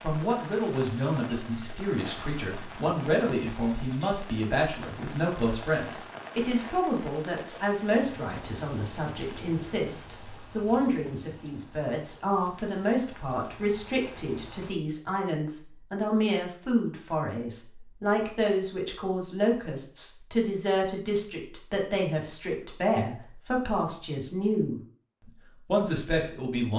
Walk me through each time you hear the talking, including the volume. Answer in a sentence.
The talking can be heard from 0.0 to 24.8 s, at a steady volume; and briefly from 25.6 to 26.7 s.